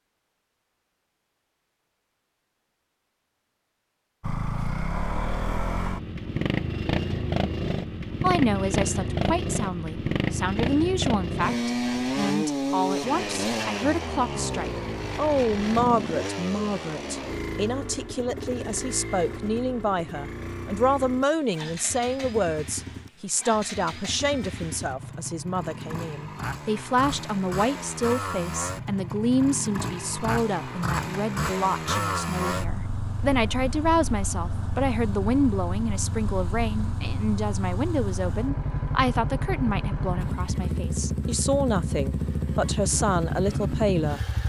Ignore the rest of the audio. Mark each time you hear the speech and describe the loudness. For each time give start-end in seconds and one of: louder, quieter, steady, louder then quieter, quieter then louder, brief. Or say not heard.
8.2-44.2 steady.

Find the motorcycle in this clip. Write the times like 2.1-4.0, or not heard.
4.2-44.4.